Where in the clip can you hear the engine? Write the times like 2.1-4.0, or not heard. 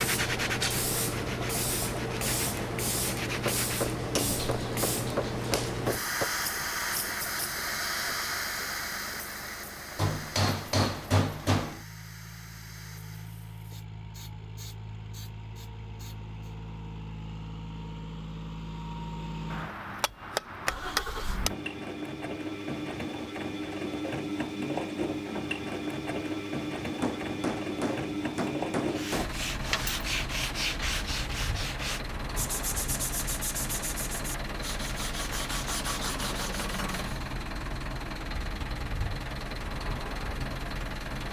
0.0-41.2.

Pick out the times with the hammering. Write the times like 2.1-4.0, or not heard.
3.5-6.3, 9.9-11.8, 19.5-21.5, 27.0-29.4, 35.1-37.0.